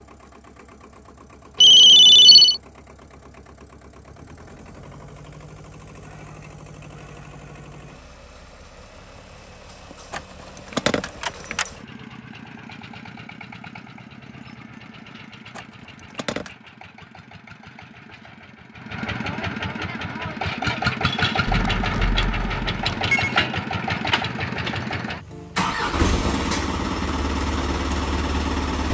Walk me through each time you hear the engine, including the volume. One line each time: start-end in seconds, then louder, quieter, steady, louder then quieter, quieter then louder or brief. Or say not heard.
0.0-28.9 louder.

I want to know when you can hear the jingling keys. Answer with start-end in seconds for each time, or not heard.
10.1-11.7, 15.6-16.5.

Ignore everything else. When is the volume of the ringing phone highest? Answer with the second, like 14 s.
2 s.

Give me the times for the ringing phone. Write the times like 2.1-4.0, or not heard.
1.6-2.6, 21.4-23.4.